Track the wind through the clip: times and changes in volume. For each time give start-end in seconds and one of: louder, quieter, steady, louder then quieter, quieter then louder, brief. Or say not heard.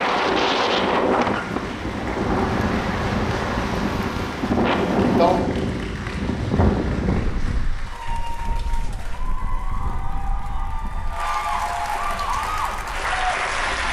0.0-13.8 quieter.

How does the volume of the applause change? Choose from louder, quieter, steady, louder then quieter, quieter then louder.
louder.